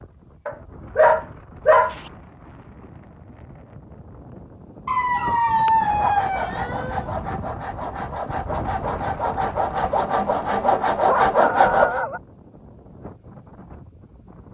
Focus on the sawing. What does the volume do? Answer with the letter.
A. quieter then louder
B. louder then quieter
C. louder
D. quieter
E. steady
C.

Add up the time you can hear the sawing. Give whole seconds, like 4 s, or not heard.
6 s.